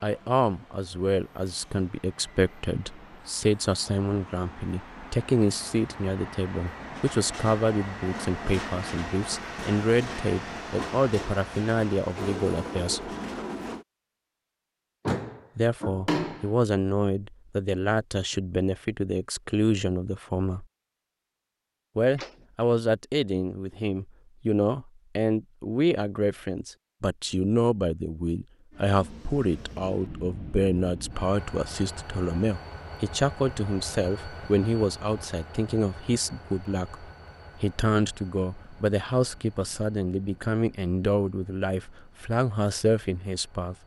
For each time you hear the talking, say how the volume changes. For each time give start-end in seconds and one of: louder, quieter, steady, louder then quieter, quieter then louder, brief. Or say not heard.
0.0-13.1 steady
15.6-20.6 steady
21.9-43.8 steady.